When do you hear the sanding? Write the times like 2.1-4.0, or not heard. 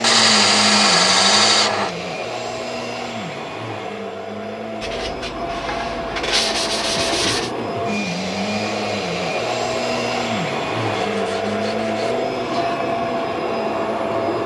0.0-1.9, 4.8-7.5, 10.9-12.8.